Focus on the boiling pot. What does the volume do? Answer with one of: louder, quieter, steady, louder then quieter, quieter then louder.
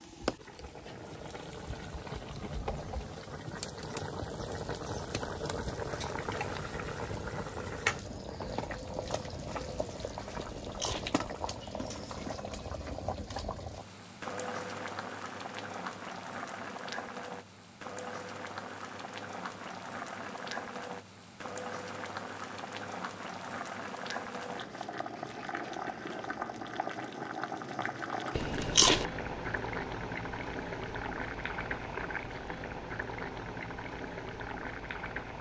steady.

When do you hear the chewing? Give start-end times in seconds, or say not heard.
10.3-11.1, 28.4-29.1.